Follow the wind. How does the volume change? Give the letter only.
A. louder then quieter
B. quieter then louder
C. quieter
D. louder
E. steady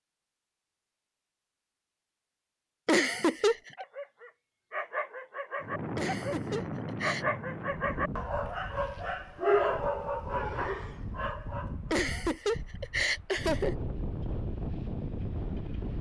B.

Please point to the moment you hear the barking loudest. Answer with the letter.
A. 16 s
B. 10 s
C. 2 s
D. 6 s
B.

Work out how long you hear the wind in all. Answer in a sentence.
The wind can be heard for 10 seconds in total.